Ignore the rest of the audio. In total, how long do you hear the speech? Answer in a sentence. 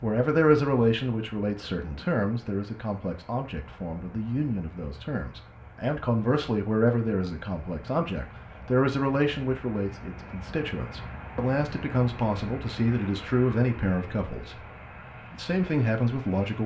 The speech can be heard for 16 seconds in total.